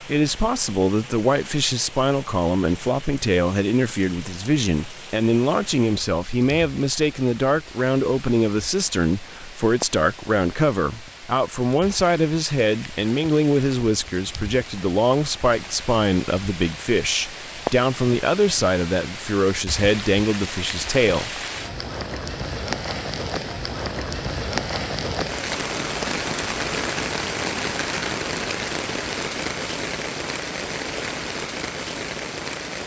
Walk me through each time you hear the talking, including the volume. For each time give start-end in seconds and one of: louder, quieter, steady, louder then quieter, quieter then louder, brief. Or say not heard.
0.0-21.4 steady.